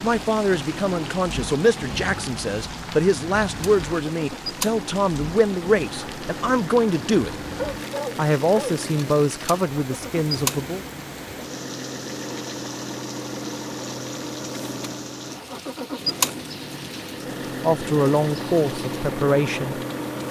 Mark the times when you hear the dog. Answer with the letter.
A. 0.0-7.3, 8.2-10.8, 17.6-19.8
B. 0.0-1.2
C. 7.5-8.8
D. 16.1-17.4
C.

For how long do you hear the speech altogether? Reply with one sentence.
You can hear the speech for 12 seconds altogether.